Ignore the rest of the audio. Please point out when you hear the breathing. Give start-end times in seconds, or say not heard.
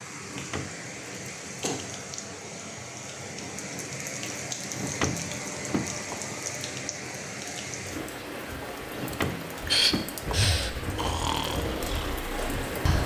9.7-13.0.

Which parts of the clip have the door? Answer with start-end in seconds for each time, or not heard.
0.2-0.9, 4.8-6.2, 8.9-10.4.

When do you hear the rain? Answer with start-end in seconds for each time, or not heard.
0.0-13.0.